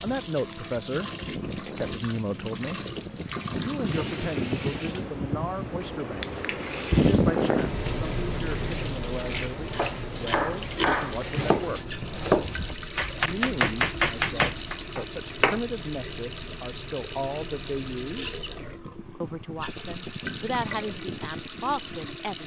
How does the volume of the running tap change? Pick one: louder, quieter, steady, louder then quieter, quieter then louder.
steady.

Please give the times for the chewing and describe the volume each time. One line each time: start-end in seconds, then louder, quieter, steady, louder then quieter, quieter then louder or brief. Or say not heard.
not heard.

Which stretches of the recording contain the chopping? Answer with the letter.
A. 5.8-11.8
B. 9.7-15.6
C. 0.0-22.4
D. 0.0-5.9
B.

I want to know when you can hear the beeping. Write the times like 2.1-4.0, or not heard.
not heard.